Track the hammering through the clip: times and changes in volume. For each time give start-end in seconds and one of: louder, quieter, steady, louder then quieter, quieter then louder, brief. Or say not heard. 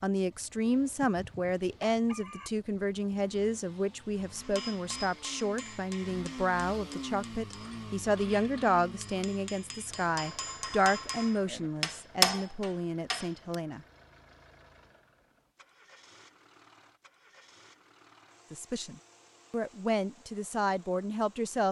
4.3-13.6 quieter then louder.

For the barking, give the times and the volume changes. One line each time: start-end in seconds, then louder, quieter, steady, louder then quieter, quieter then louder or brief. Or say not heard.
not heard.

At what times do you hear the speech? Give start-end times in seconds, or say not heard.
0.0-13.8, 18.5-21.6.